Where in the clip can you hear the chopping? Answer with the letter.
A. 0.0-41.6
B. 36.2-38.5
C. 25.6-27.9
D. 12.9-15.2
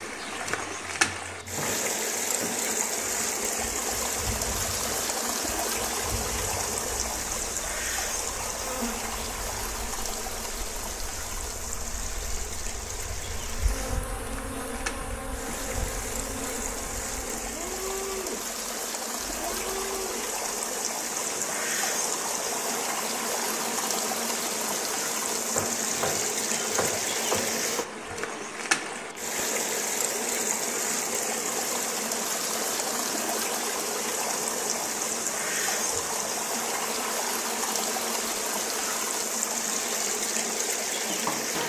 C.